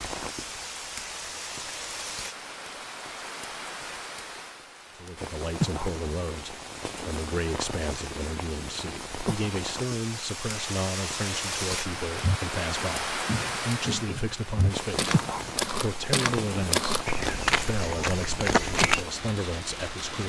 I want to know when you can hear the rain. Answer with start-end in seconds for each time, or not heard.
0.0-20.2.